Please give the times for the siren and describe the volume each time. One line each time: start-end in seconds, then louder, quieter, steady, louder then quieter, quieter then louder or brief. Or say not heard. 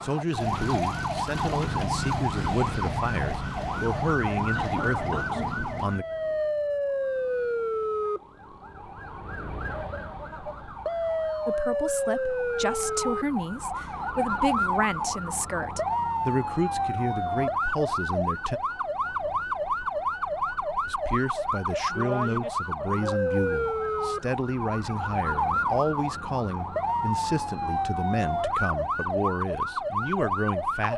0.0-30.9 steady.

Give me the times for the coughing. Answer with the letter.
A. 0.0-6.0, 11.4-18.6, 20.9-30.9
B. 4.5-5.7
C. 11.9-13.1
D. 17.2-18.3
B.